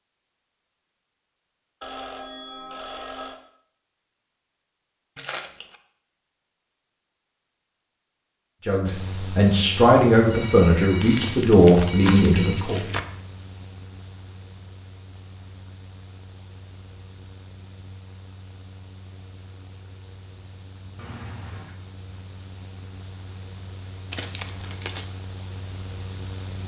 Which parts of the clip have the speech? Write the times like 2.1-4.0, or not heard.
8.7-12.8.